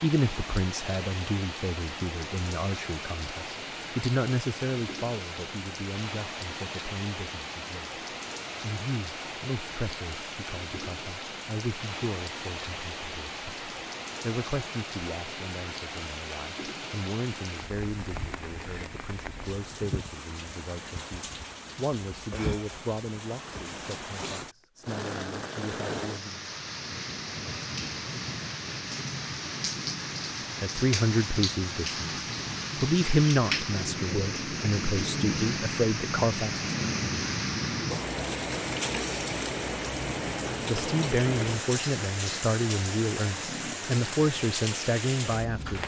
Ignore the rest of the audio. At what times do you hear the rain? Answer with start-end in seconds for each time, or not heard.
0.0-45.8.